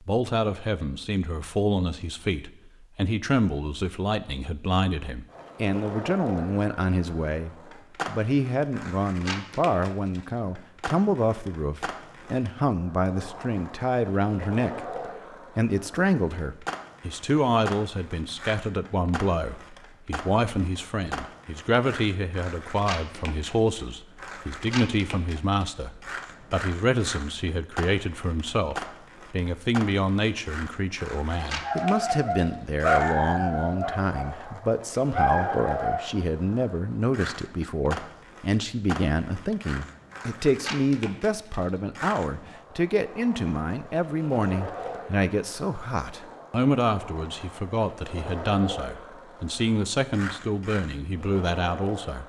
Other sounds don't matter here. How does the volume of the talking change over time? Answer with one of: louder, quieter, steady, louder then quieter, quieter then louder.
steady.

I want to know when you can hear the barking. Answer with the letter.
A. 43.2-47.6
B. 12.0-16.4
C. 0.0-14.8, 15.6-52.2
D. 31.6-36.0
D.